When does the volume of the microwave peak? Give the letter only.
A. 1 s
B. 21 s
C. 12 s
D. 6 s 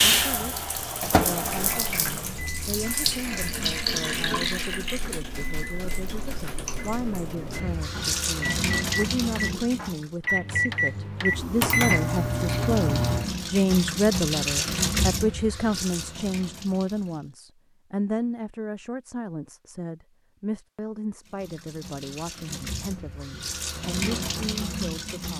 C.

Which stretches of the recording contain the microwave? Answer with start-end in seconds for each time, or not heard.
0.0-13.4.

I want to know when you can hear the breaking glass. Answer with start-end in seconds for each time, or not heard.
not heard.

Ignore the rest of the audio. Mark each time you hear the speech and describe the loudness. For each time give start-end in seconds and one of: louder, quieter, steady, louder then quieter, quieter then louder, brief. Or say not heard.
0.0-25.3 louder then quieter.